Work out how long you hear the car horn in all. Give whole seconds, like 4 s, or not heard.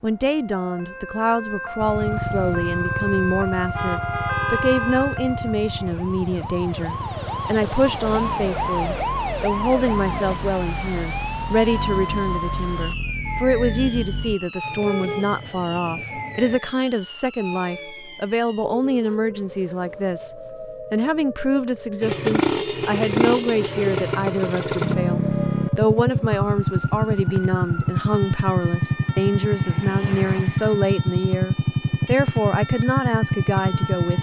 4 s.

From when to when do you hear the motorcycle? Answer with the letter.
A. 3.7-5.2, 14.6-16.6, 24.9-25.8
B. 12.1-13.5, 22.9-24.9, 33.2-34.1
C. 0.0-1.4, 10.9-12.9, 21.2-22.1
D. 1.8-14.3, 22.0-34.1
D.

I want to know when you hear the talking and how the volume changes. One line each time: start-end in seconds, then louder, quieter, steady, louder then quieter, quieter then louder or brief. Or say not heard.
0.0-34.1 steady.